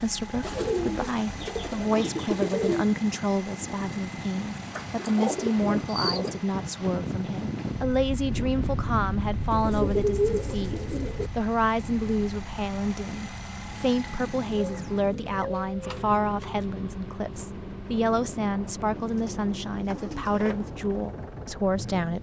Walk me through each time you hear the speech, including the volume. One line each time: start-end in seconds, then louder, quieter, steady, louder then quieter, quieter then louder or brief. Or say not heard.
0.0-22.1 steady.